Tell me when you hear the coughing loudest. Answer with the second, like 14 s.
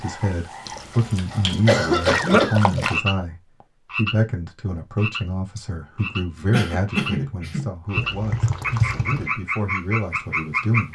2 s.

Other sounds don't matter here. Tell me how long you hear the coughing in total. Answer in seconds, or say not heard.
3 s.